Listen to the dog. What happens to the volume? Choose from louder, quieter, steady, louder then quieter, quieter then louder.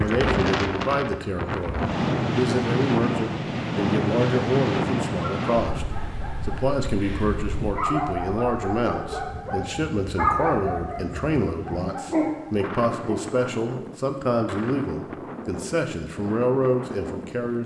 louder.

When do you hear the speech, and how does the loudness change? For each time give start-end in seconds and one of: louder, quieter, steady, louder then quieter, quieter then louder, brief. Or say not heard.
0.0-17.6 steady.